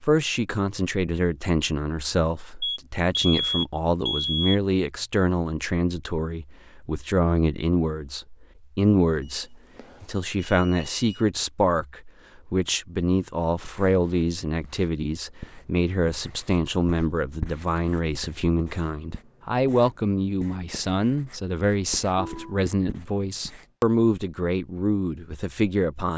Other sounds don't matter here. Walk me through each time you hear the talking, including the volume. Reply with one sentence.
You can hear the talking from 0.0 to 26.1 s, at a steady volume.